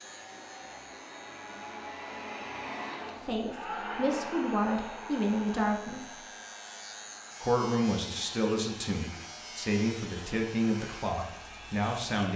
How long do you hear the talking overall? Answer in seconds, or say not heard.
8 s.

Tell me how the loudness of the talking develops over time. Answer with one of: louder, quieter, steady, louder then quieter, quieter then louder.
steady.